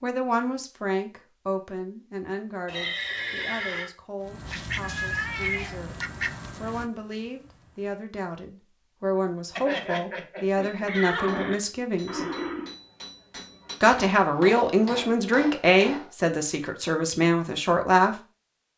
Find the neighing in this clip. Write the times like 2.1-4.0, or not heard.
2.6-3.9, 9.6-11.6.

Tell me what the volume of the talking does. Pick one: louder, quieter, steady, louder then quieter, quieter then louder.
quieter then louder.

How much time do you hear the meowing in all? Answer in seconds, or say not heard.
2 s.